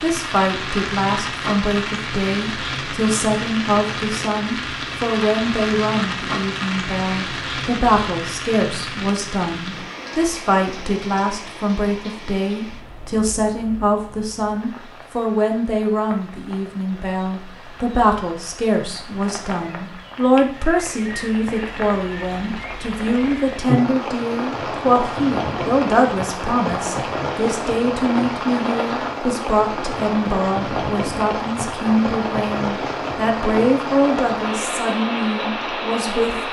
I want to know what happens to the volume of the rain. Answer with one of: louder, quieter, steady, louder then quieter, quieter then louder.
quieter then louder.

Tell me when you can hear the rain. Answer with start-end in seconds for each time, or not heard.
0.0-36.4.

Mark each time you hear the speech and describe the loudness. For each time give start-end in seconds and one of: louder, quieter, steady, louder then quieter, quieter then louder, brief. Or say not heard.
0.0-36.4 steady.